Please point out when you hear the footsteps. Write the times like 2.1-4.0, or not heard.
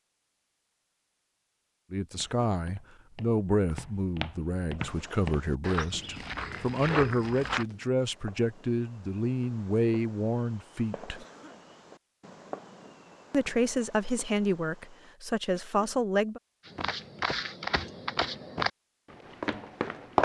2.1-7.7, 16.6-20.2.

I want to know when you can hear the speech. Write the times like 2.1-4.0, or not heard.
1.9-11.2, 13.3-16.4.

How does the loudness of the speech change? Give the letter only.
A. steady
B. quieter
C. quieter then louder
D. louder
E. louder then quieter
A.